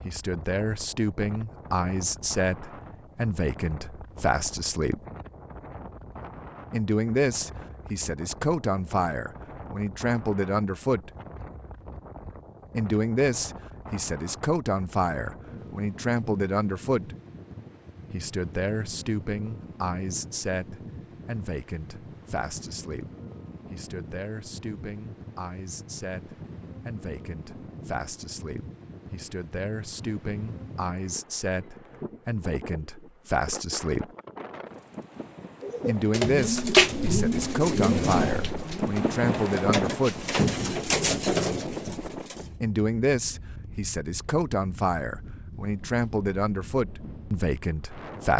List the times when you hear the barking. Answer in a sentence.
You can't hear the barking here.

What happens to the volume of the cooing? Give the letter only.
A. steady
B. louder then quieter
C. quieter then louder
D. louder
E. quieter
C.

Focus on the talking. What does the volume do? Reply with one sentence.
The loudness of the talking goes down, then up.